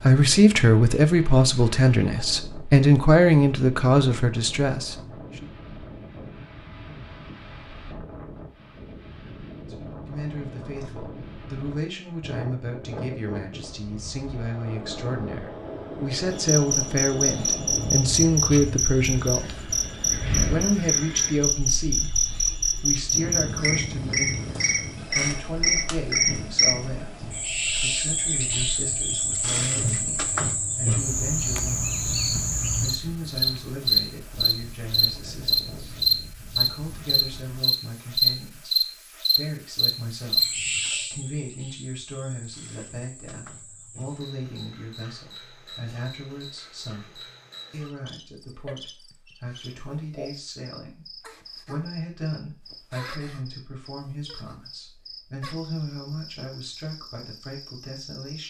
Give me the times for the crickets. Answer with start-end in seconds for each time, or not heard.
16.3-58.4.